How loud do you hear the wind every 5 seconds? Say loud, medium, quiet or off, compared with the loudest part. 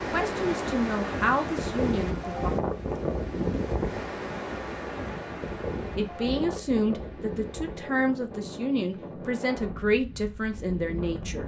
loud, medium, medium.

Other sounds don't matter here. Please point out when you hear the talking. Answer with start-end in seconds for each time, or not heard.
0.1-2.5, 6.0-11.4.